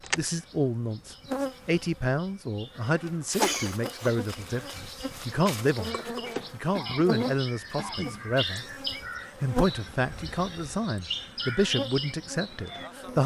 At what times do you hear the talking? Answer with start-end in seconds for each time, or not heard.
0.1-8.7, 9.4-13.2.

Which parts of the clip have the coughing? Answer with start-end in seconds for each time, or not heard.
3.4-4.1, 6.7-8.2.